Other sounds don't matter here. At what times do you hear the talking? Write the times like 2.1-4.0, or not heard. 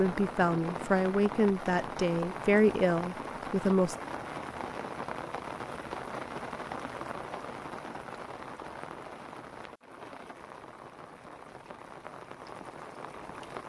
0.0-4.0.